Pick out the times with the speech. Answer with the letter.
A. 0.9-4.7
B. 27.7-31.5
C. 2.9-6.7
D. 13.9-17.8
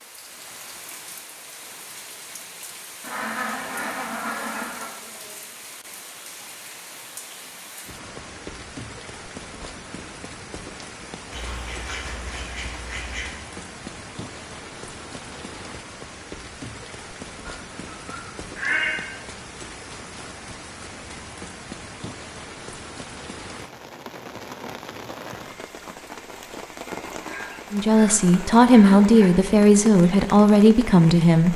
B.